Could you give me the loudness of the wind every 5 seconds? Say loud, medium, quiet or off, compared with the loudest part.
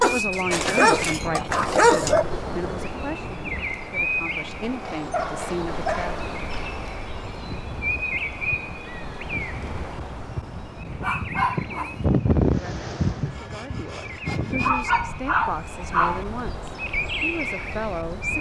medium, quiet, loud, quiet.